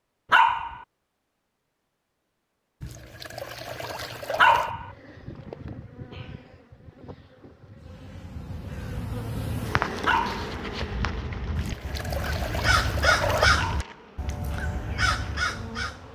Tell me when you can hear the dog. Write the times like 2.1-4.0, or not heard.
0.3-0.8, 4.3-4.9, 10.1-10.5, 13.6-14.1.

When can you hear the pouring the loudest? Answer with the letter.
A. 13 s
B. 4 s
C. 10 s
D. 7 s
A.